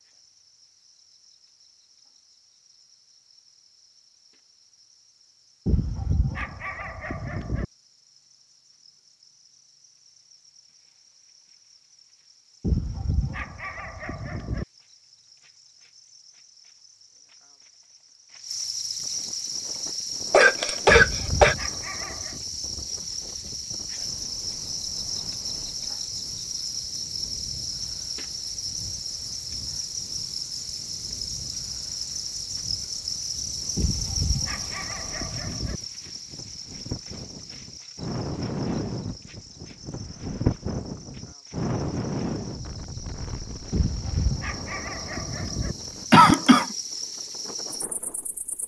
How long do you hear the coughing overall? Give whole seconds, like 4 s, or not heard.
2 s.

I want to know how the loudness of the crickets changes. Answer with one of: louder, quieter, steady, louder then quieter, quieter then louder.
louder then quieter.